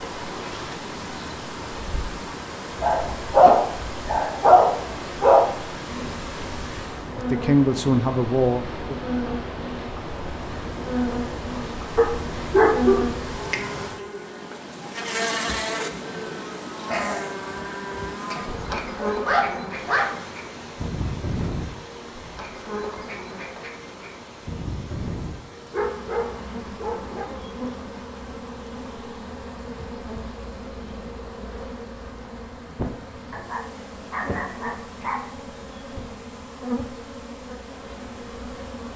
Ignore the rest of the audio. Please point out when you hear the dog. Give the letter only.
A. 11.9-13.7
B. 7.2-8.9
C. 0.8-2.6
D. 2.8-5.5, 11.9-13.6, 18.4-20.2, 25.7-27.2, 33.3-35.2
D.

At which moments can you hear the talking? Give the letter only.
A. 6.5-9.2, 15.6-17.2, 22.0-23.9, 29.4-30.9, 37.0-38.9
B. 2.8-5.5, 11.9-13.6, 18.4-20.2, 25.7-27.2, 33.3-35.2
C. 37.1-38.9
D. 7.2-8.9
D.